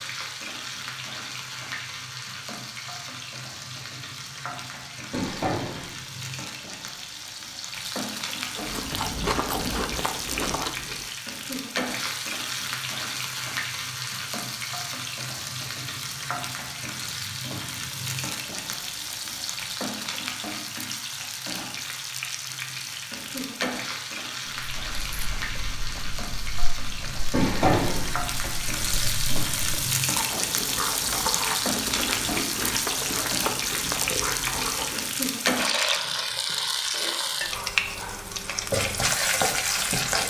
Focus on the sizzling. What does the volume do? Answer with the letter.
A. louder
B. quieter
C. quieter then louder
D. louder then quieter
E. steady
A.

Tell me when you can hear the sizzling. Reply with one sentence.
The sizzling can be heard from 0.0 to 40.2 s.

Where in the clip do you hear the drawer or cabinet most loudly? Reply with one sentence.
The loudest moment of the drawer or cabinet is at 28 seconds.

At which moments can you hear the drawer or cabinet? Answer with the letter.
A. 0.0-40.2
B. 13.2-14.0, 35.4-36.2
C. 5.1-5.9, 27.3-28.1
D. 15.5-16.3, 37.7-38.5
C.